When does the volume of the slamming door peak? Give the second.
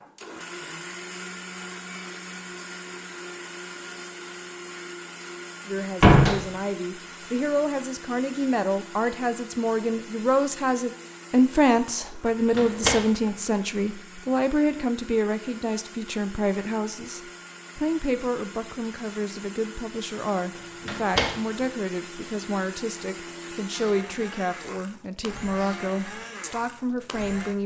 6 s.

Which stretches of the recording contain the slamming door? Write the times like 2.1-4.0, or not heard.
6.0-6.4, 12.6-13.0, 20.9-21.3.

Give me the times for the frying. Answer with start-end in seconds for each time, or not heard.
not heard.